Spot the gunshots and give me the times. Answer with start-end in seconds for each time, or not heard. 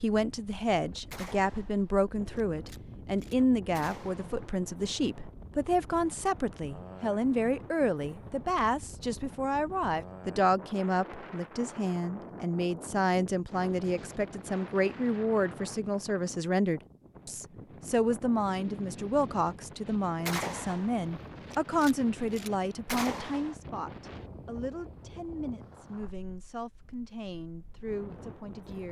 1.1-4.5, 20.2-23.6.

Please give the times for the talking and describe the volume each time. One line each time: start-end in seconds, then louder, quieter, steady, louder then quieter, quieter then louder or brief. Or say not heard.
0.0-28.8 quieter.